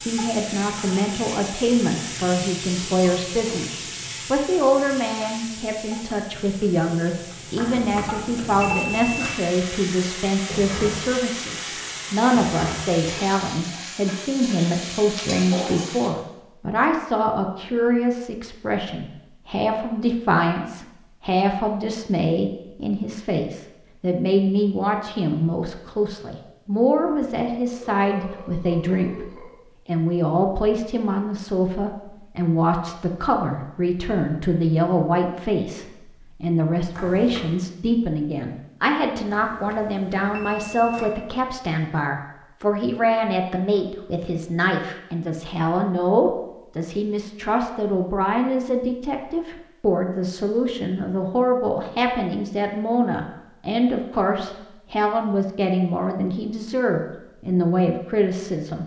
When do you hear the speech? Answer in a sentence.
You can hear the speech from 0.0 to 58.8 s.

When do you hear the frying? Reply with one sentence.
The frying can be heard from 0.0 to 16.1 s.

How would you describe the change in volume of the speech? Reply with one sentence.
The loudness of the speech stays about the same.